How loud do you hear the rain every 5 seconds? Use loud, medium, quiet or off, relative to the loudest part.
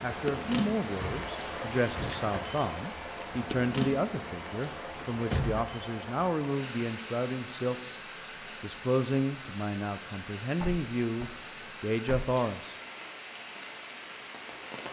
loud, medium, medium.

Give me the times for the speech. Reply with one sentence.
You can hear the speech from 0.0 to 8.0 s and from 8.6 to 12.8 s.